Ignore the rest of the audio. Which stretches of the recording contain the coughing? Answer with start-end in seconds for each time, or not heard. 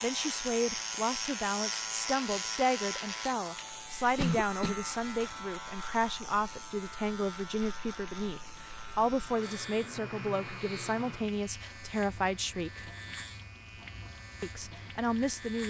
4.2-5.3.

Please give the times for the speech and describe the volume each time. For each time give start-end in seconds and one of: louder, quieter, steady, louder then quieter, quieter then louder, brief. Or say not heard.
0.0-12.8 steady
14.4-15.6 brief.